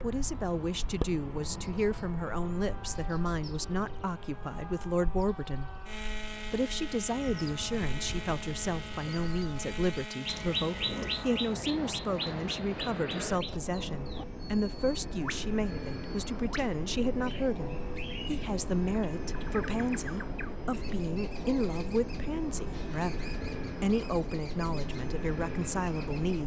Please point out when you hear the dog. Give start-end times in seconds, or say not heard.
not heard.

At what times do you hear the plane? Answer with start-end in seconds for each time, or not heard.
0.0-26.4.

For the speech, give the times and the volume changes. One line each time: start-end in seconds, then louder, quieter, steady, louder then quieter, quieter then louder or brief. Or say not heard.
0.0-26.4 steady.